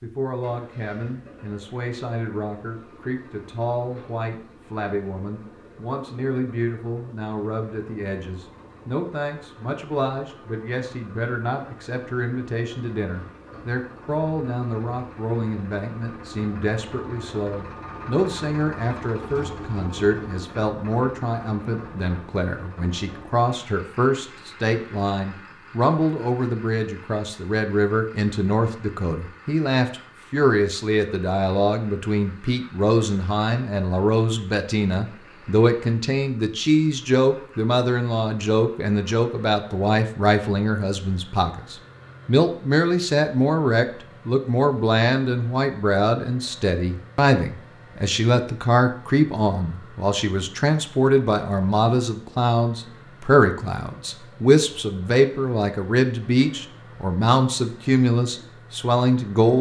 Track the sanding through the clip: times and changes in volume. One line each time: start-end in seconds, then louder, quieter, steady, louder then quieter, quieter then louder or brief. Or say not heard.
not heard.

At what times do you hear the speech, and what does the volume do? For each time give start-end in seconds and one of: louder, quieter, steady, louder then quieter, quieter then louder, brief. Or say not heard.
0.0-59.5 louder.